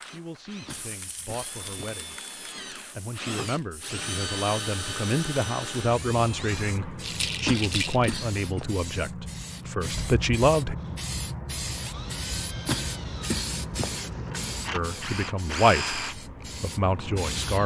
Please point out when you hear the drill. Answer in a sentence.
You can hear the drill from 0.0 to 6.8 s and from 10.8 to 17.6 s.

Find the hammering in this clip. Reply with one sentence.
The hammering can't be heard in this clip.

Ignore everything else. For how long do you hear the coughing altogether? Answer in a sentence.
You can hear the coughing for 4 seconds altogether.